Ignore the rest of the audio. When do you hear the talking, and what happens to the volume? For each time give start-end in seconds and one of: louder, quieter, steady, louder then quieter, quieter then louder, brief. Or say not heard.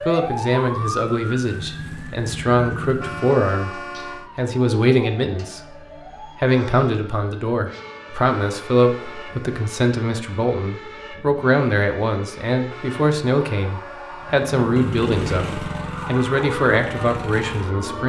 0.1-18.0 steady.